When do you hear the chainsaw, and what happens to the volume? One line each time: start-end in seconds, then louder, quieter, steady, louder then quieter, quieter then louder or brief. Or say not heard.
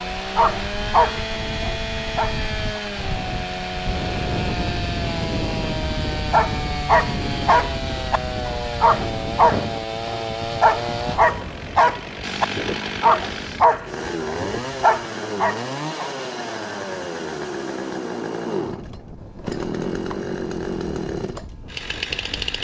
0.0-22.5 steady.